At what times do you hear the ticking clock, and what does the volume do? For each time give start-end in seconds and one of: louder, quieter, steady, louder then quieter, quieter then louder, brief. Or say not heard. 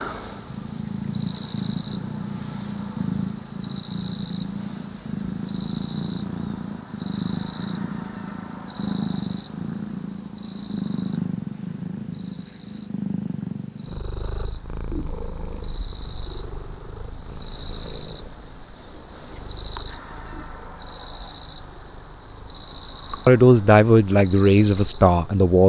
not heard.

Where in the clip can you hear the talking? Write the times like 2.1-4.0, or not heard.
23.1-25.6.